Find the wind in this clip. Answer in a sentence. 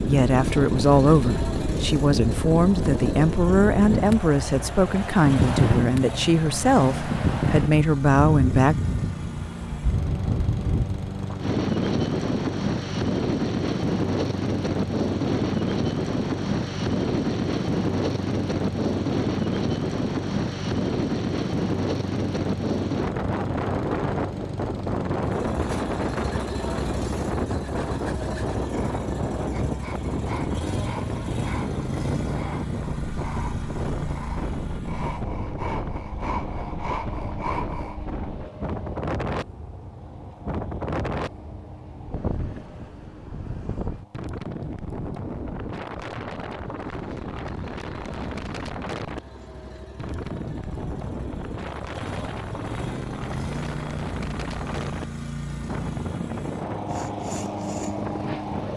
The wind can be heard from 0.0 to 58.7 s.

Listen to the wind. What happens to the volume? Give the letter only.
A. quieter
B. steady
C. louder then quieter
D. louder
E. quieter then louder
A.